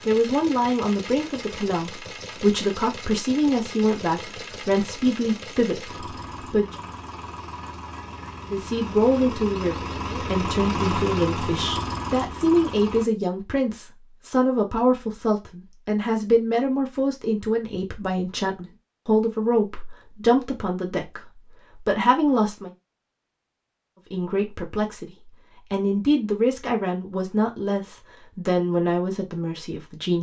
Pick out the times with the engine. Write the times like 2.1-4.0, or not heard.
0.0-13.1.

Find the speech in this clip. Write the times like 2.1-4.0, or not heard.
0.1-6.8, 8.5-22.7, 24.1-30.1.